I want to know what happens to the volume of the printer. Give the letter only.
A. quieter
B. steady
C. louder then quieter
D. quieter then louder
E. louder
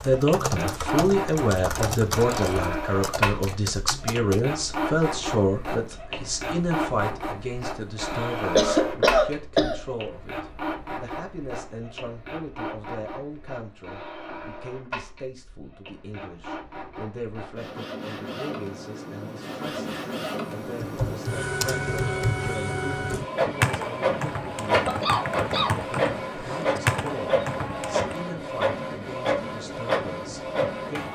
D.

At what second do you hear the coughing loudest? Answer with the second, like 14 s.
9 s.